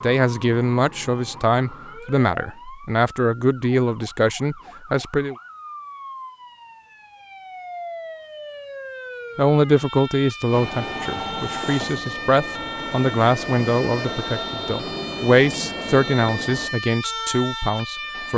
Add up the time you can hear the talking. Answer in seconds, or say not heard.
14 s.